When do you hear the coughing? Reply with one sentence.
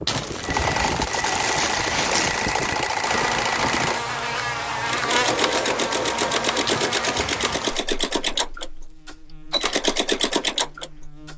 You can't hear the coughing here.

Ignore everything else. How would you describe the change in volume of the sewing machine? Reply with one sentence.
The volume of the sewing machine stays about the same.